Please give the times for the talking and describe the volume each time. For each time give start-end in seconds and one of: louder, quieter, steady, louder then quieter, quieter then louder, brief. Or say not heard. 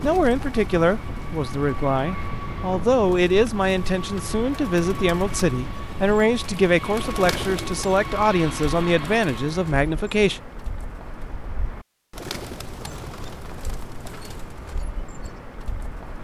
0.0-10.4 steady.